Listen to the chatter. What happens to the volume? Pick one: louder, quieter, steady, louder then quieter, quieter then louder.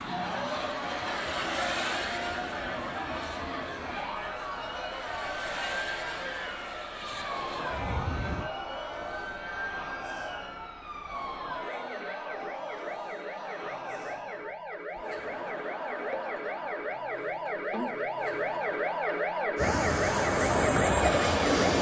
quieter.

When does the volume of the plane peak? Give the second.
21 s.